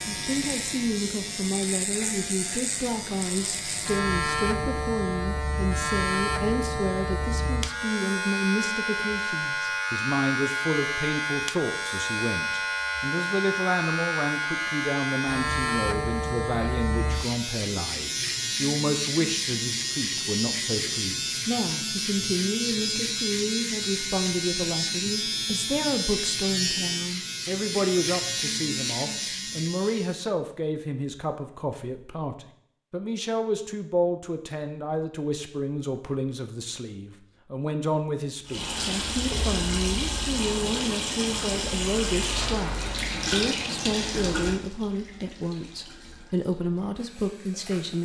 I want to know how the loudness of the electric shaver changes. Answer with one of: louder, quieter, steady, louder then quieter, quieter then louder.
steady.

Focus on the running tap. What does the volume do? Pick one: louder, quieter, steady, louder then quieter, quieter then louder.
quieter.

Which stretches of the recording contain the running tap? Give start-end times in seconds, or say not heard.
38.5-48.0.